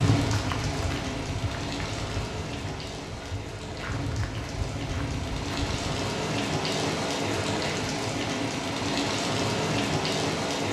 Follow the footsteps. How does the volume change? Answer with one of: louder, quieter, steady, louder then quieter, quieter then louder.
quieter then louder.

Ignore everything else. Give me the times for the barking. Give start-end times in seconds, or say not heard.
not heard.